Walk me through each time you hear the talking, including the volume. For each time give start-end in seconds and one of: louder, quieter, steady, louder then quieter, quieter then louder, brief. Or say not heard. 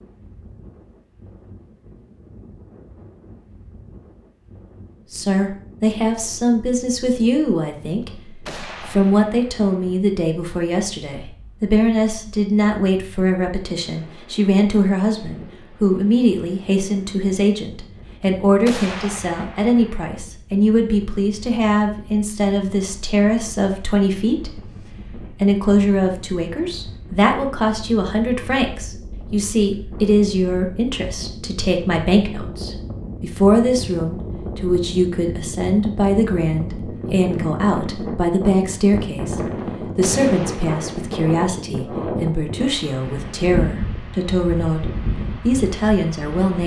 5.1-24.6 steady
25.3-46.6 steady.